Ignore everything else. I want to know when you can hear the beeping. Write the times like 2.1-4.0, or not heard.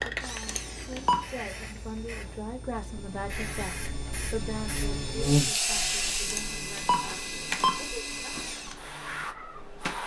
0.5-1.2, 6.2-7.8.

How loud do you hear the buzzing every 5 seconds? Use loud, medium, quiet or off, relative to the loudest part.
medium, loud.